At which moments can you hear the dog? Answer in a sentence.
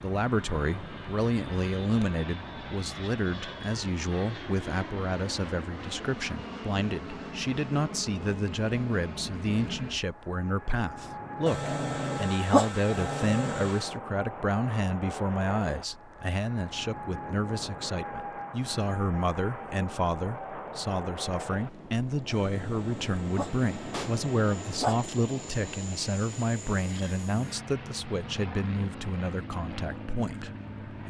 You can hear the dog from 11.4 to 13.9 s and from 22.3 to 25.0 s.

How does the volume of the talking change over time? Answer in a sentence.
The volume of the talking stays about the same.